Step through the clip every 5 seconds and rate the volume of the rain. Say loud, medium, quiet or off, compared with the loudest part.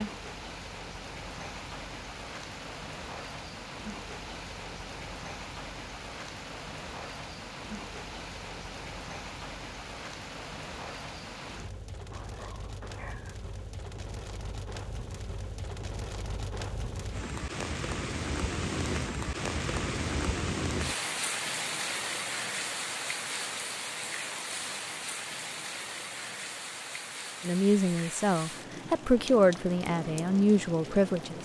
medium, medium, medium, loud, loud, medium, medium.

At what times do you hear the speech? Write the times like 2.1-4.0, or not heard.
27.4-31.4.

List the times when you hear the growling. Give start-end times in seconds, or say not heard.
12.1-13.4.